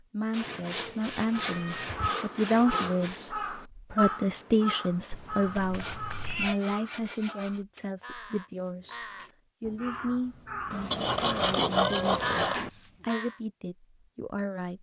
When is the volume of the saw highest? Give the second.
12 s.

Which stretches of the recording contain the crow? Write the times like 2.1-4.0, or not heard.
1.4-13.3.